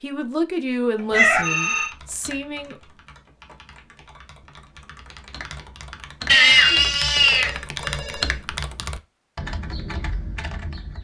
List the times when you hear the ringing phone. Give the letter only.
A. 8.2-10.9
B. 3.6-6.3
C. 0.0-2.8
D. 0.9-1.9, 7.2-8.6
D.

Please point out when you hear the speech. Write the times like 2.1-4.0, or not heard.
0.0-2.8.